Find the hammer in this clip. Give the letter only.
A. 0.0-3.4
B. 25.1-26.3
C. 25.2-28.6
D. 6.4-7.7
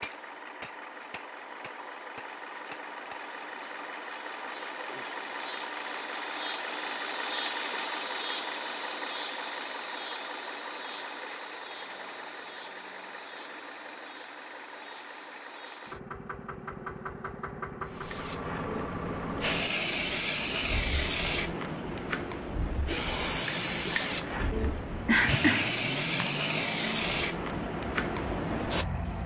A.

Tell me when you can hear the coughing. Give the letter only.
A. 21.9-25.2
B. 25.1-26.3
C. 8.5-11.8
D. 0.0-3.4
B.